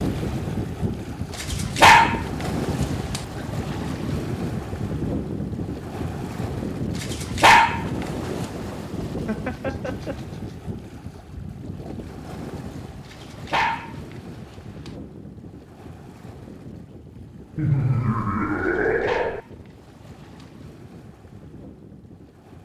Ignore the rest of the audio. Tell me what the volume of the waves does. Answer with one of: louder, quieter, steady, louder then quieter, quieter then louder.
quieter.